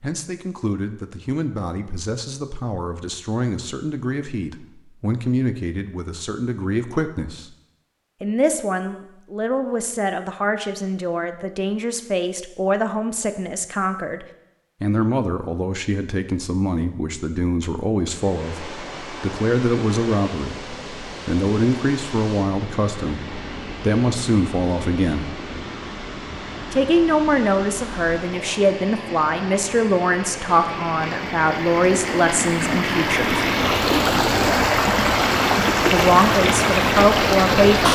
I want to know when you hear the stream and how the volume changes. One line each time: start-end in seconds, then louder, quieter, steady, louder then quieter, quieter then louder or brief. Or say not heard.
18.1-37.9 louder.